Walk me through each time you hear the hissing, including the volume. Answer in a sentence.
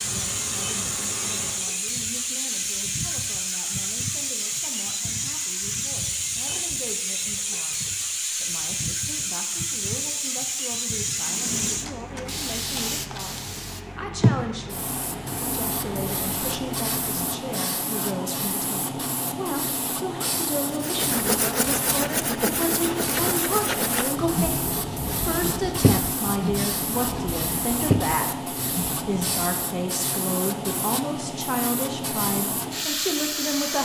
You can hear the hissing from 0.0 to 33.8 s, at a steady volume.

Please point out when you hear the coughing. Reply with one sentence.
You can't hear the coughing here.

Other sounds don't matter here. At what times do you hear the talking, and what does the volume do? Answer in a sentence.
You can hear the talking from 0.1 to 33.8 s, getting louder.